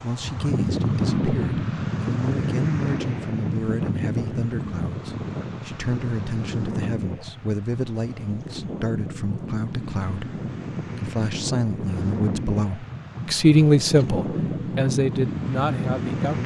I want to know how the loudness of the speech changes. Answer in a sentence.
The volume of the speech goes up.